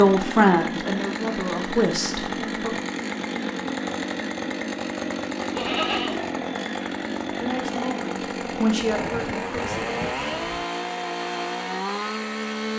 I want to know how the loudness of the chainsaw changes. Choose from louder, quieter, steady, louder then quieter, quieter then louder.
steady.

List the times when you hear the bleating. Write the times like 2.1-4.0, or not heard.
5.5-6.2.